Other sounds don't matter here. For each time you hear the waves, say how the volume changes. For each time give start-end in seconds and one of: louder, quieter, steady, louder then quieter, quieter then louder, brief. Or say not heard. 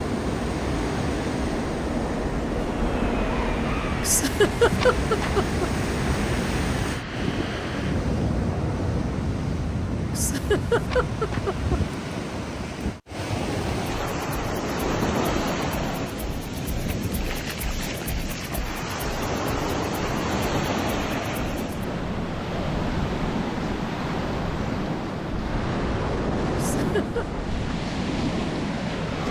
0.0-29.2 steady.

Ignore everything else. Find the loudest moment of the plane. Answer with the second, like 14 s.
3 s.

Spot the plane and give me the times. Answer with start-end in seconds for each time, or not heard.
0.0-9.3.